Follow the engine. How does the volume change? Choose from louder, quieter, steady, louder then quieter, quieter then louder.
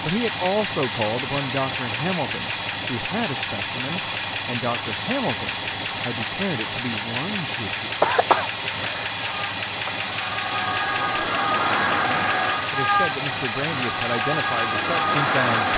steady.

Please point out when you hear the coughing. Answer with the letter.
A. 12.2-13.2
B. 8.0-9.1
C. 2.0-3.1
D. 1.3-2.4
B.